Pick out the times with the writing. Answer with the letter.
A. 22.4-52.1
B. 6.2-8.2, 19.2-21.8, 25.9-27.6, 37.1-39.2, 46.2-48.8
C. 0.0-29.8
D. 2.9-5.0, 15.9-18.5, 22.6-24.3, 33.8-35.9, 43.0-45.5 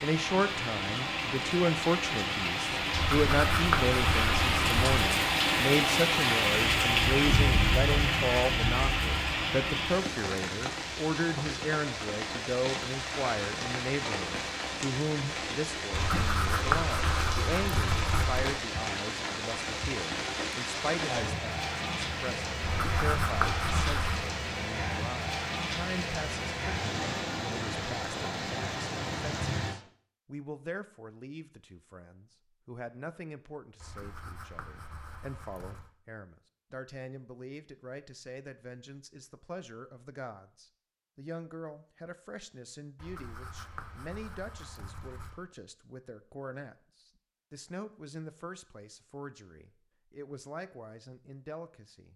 D.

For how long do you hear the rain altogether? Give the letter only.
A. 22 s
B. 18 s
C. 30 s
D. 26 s
C.